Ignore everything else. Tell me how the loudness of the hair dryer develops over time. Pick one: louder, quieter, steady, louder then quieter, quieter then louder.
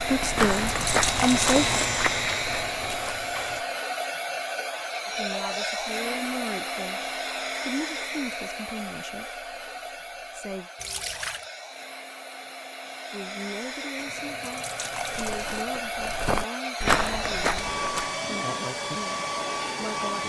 quieter then louder.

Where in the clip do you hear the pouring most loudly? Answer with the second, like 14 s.
1 s.